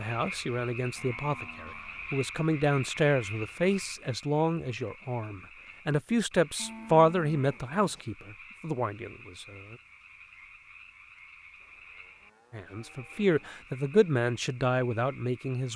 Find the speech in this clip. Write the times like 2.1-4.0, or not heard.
0.0-9.8, 12.5-15.7.